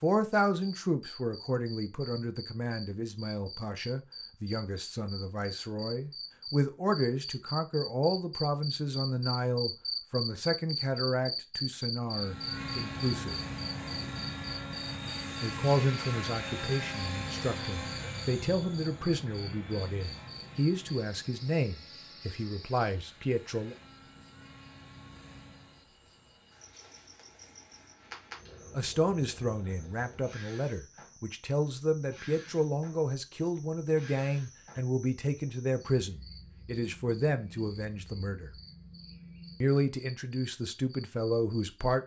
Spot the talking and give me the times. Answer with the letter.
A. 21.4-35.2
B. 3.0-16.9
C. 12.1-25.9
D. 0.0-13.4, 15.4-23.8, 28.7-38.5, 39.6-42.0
D.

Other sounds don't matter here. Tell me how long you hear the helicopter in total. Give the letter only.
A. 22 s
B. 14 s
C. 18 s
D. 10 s
B.